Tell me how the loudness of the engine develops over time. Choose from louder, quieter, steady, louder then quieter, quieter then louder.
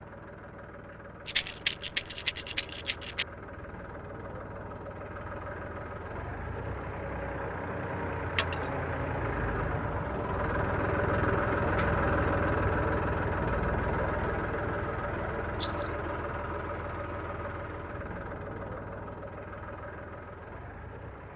louder then quieter.